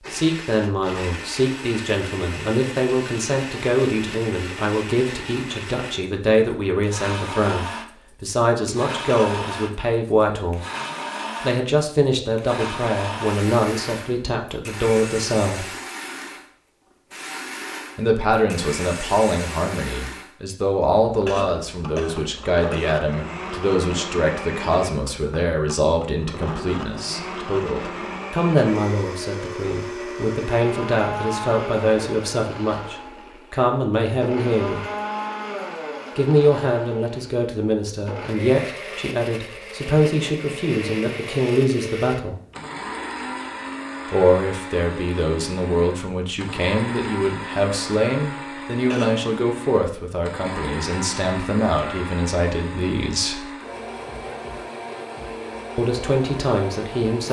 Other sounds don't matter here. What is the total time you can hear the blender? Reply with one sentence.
You can hear the blender for 57 seconds altogether.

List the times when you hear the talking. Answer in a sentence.
The talking can be heard from 0.1 to 10.7 s, from 11.4 to 15.7 s, from 17.9 to 34.9 s, from 36.1 to 42.4 s, from 44.1 to 53.5 s and from 55.8 to 57.2 s.